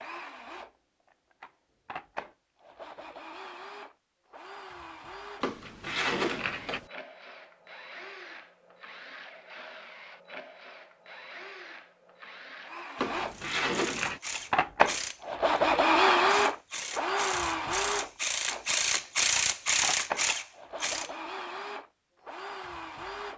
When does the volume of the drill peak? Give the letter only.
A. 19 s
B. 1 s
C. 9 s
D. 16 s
D.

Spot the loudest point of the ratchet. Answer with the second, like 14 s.
19 s.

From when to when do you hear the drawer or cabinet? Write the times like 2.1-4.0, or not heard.
5.4-6.8, 12.9-14.2.